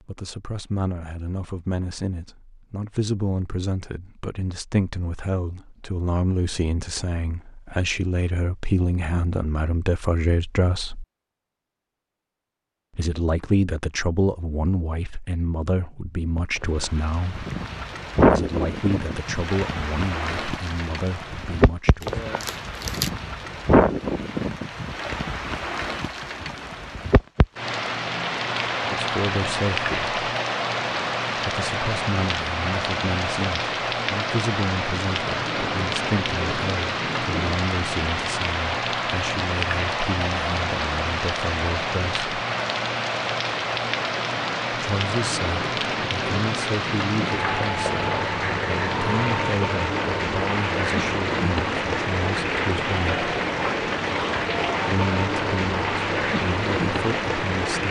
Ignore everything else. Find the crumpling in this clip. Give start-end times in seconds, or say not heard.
22.0-23.1.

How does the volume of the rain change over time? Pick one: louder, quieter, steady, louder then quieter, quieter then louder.
steady.